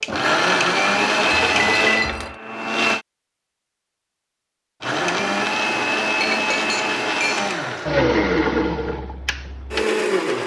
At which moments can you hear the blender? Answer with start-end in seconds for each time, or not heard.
0.0-3.0, 4.8-10.4.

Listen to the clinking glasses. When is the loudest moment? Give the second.
2 s.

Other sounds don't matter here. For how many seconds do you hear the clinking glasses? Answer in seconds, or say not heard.
3 s.